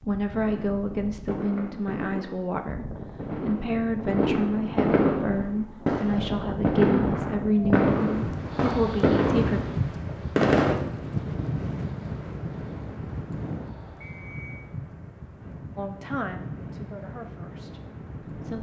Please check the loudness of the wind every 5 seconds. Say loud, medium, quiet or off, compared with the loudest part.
medium, loud, loud, medium.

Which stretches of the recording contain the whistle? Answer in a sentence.
The whistle can be heard from 14.0 to 14.7 s.